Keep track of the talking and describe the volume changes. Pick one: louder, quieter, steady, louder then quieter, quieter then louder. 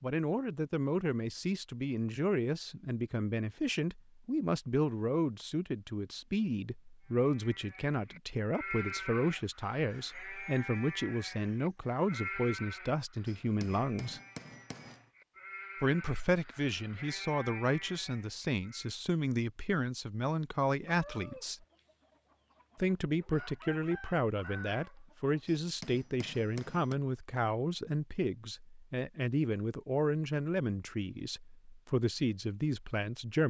steady.